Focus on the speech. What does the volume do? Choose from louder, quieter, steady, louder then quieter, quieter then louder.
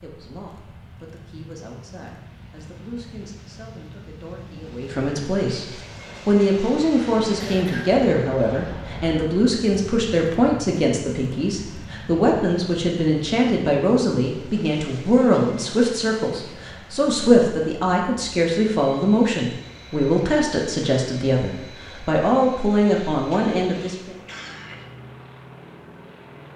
louder.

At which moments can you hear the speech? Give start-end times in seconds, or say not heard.
0.0-5.7, 6.2-24.1.